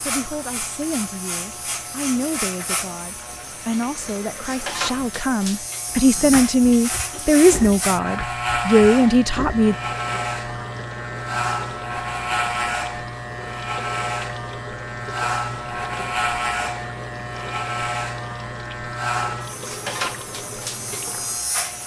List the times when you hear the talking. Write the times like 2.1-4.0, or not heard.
0.1-9.8.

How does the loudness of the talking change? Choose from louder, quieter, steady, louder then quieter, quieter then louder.
louder.